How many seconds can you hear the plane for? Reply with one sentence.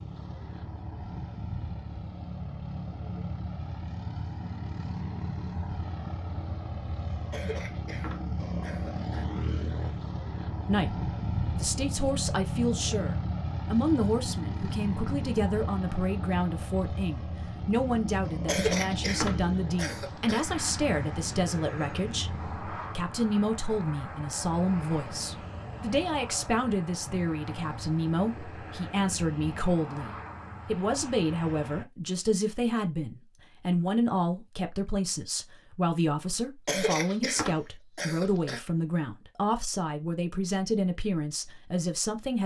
You can hear the plane for 32 seconds altogether.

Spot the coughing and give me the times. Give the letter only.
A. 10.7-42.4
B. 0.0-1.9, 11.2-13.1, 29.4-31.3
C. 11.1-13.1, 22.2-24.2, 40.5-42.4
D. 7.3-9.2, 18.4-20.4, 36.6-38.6
D.